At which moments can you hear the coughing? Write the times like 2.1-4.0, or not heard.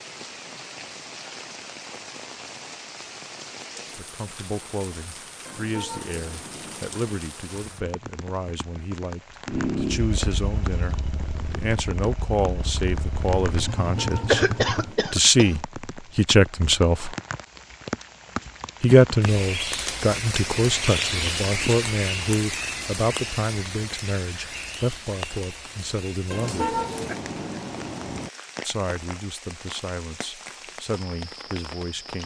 14.2-15.6.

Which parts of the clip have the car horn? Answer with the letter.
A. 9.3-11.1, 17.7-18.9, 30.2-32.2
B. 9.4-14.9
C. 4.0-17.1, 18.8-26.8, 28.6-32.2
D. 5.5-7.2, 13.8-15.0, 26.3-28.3
D.